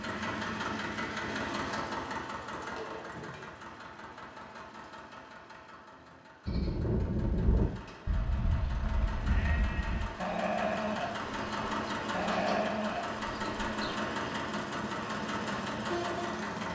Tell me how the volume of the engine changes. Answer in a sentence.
The loudness of the engine goes down, then up.